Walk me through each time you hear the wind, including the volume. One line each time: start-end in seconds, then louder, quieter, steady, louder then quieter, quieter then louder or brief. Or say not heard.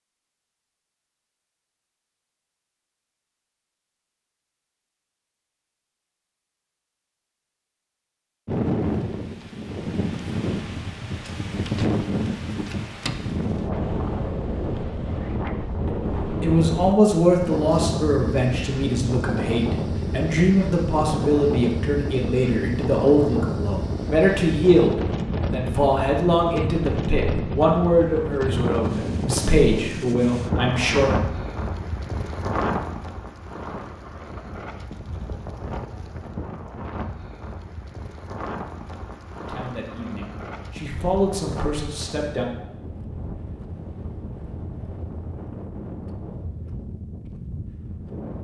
8.4-48.3 quieter.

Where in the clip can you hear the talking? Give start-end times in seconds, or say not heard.
15.8-31.2, 39.5-42.5.